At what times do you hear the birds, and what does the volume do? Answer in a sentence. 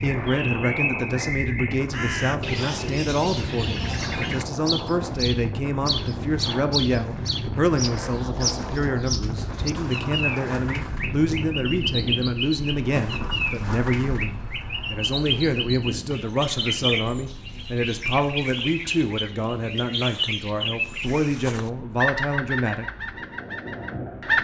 The birds can be heard from 0.0 to 24.3 s, at a steady volume.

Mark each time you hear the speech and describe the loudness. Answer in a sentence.
The speech can be heard from 0.0 to 22.9 s, at a steady volume.